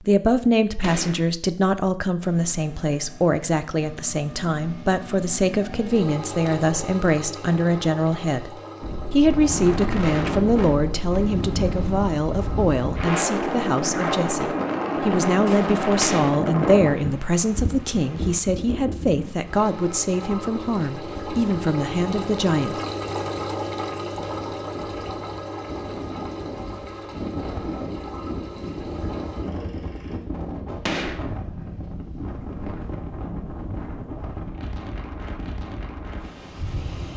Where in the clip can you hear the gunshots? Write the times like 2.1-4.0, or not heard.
0.8-1.3, 16.0-16.4, 30.9-31.3.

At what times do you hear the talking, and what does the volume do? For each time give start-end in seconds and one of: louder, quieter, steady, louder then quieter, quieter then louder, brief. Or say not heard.
0.0-22.8 steady.